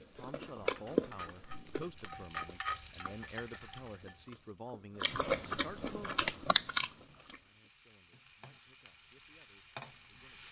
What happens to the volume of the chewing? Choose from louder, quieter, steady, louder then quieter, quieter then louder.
quieter then louder.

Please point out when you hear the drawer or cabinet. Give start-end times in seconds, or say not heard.
not heard.